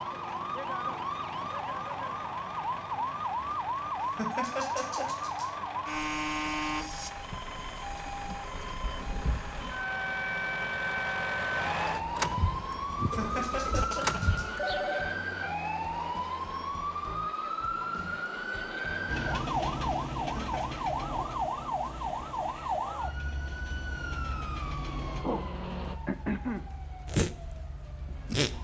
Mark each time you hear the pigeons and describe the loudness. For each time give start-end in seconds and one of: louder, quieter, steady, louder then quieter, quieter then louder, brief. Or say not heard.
not heard.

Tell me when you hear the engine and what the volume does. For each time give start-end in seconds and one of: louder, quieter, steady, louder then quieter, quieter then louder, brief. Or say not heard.
0.0-14.7 louder
19.1-25.9 quieter then louder.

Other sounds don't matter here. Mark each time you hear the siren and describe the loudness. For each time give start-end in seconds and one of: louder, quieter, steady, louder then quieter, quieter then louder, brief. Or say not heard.
0.0-28.5 steady.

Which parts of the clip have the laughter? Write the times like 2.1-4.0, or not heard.
4.2-5.5, 13.2-14.5, 20.4-20.8.